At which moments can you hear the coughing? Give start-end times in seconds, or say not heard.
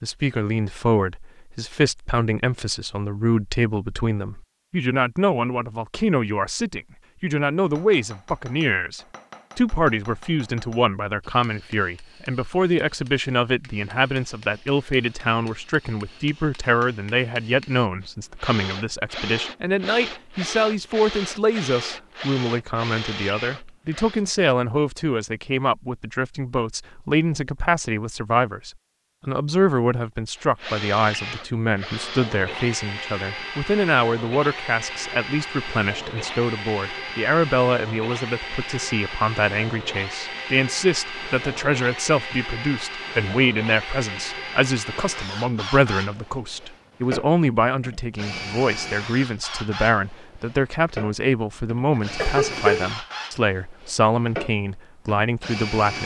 52.0-52.9.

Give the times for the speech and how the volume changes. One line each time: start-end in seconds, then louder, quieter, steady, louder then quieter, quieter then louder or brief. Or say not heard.
0.0-56.0 steady.